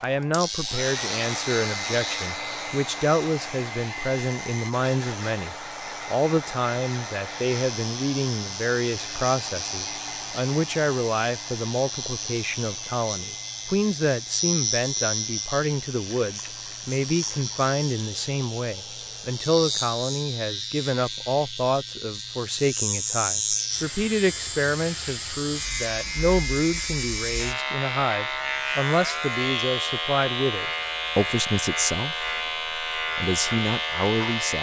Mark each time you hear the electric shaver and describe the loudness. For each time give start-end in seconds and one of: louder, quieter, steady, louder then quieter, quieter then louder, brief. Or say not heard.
0.0-34.5 louder.